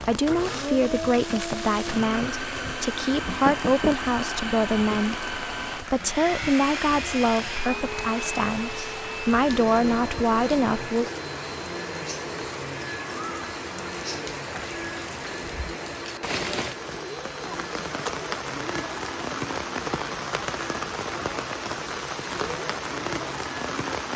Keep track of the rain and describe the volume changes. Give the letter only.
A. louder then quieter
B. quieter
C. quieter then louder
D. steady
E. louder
E.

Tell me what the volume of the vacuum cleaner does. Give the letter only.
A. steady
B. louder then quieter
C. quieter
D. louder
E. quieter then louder
C.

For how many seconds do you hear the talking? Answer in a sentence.
You can hear the talking for 11 seconds altogether.